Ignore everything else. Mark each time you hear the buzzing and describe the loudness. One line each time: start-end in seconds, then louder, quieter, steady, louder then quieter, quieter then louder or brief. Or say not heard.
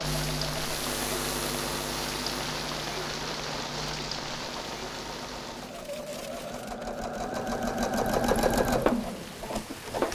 0.0-5.7 quieter.